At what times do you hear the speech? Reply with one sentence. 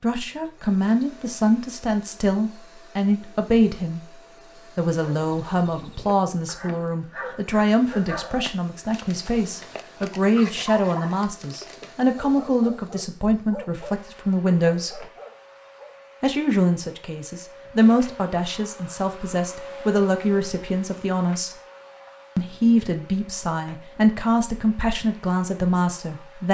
You can hear the speech from 0.0 to 15.1 s, from 16.2 to 21.6 s and from 22.4 to 26.4 s.